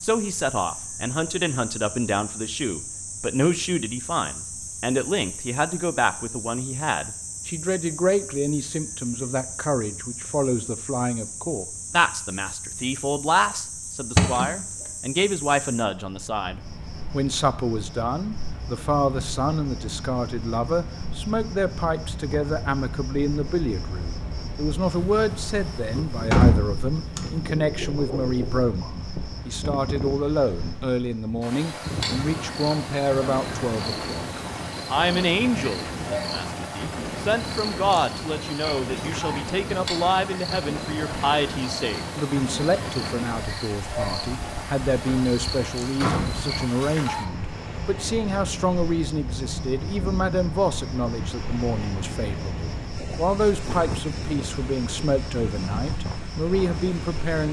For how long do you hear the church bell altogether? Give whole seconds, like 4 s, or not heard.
not heard.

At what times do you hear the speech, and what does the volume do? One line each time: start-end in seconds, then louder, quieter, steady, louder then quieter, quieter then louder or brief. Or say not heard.
0.0-57.4 steady.